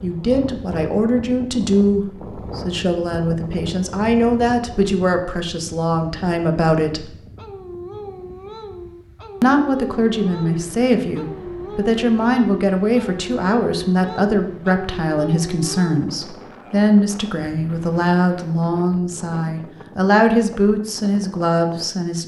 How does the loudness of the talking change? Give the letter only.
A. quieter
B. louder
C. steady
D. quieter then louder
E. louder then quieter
C.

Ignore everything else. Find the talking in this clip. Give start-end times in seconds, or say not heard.
0.0-7.2, 9.4-22.2.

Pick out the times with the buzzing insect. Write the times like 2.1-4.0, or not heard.
not heard.